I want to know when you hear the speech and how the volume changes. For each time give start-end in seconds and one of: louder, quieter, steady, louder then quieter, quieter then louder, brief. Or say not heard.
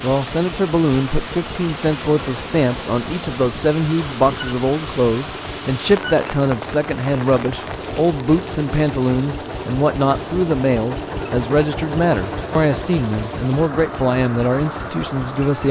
0.0-15.6 steady.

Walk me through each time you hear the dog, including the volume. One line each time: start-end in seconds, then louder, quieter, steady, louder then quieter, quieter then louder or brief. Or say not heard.
not heard.